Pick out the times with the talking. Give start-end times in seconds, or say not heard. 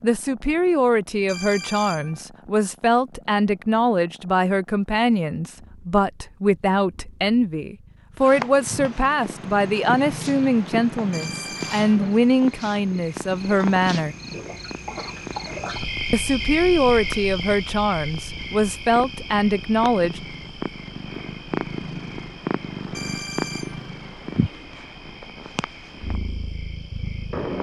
0.0-14.2, 16.1-20.2.